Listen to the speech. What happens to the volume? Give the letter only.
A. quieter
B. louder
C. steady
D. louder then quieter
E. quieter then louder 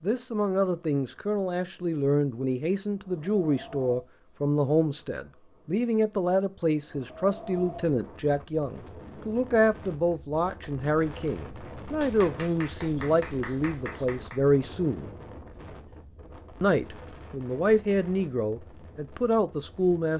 C.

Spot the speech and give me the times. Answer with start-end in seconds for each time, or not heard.
0.0-15.1, 16.6-20.1.